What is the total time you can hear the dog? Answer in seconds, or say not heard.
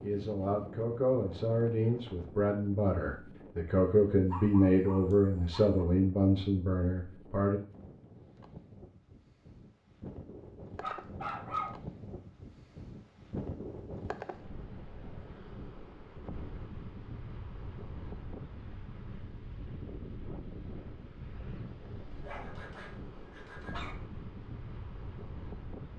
4 s.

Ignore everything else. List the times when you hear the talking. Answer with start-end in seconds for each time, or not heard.
0.0-7.6.